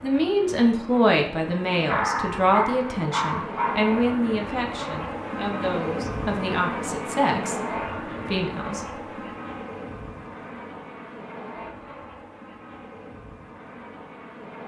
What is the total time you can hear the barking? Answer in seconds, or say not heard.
2 s.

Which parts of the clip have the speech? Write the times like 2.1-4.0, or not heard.
0.0-8.8.